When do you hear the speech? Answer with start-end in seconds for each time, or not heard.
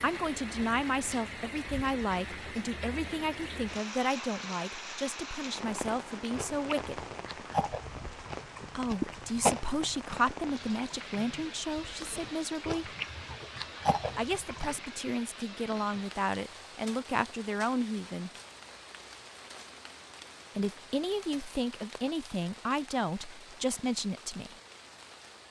0.0-7.0, 8.8-12.9, 14.2-18.3, 20.6-24.6.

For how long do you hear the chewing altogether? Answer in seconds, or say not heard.
9 s.